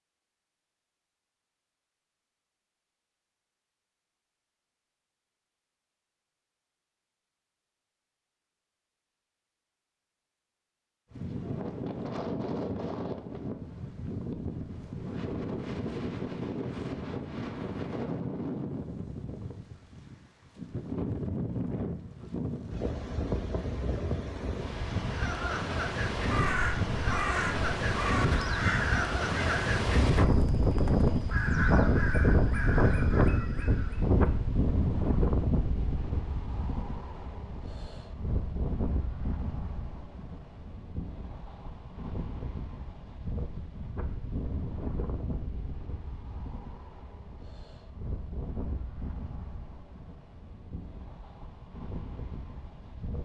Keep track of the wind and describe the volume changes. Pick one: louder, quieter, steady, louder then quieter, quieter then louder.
louder then quieter.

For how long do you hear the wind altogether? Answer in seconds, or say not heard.
42 s.